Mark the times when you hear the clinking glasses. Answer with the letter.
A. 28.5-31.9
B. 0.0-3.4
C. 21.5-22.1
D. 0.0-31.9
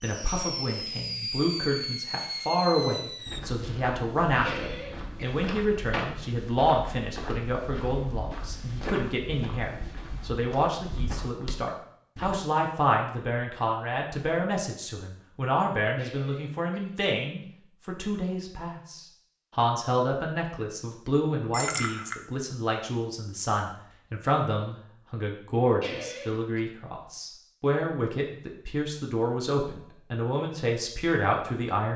C.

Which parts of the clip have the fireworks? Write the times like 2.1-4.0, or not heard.
0.0-3.4.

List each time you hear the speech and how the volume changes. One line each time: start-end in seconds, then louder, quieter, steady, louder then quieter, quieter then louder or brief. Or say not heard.
0.0-31.9 steady.